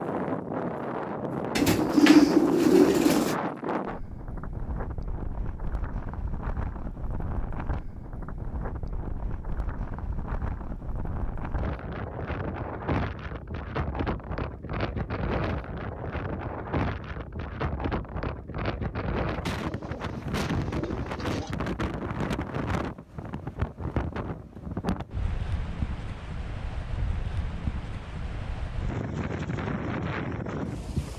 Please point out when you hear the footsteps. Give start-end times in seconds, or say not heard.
not heard.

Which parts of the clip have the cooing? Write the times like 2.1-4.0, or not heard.
1.6-3.4, 19.5-21.6.